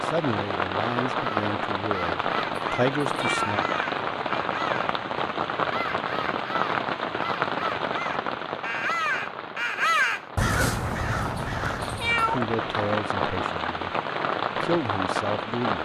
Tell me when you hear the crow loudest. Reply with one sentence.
The volume of the crow peaks at 10 seconds.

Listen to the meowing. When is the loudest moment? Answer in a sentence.
The loudest moment of the meowing is at 12 seconds.